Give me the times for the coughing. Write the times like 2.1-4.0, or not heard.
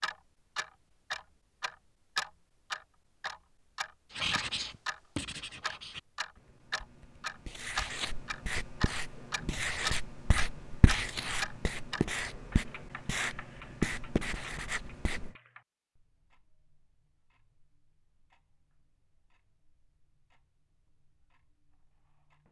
not heard.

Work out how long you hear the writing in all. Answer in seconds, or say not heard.
11 s.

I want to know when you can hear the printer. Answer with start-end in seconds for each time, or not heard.
not heard.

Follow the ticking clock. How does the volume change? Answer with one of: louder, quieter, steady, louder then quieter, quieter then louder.
quieter.